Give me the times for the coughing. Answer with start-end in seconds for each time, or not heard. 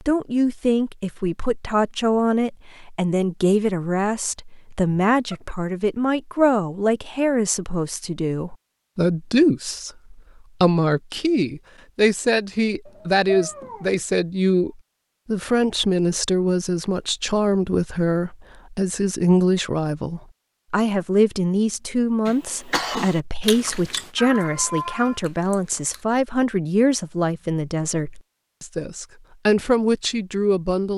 22.2-23.2.